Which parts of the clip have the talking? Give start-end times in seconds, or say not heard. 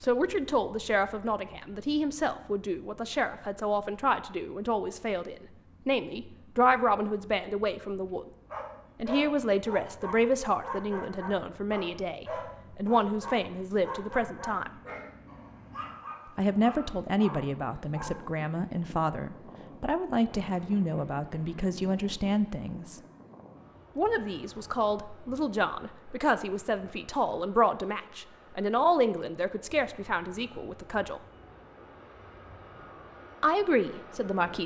0.0-8.2, 8.9-14.7, 16.4-23.0, 23.9-31.2, 33.4-34.6.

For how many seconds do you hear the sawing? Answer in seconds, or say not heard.
not heard.